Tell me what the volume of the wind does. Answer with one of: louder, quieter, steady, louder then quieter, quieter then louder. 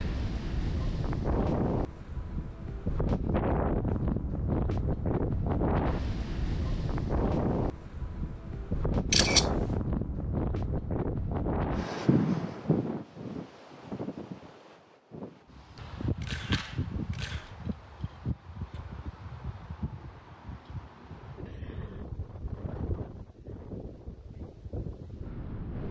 quieter.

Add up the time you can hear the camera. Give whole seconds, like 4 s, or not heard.
2 s.